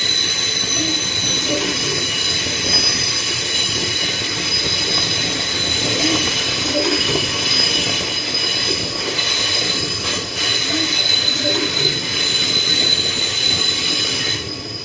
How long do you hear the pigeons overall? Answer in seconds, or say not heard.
4 s.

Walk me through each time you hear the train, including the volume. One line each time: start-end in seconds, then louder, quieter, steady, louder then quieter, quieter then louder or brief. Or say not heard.
0.0-14.7 steady.